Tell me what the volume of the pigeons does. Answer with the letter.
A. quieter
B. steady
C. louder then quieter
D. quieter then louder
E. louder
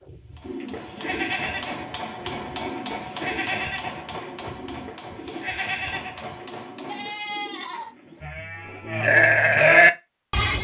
A.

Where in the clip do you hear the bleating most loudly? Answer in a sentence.
The loudest moment of the bleating is at 10 seconds.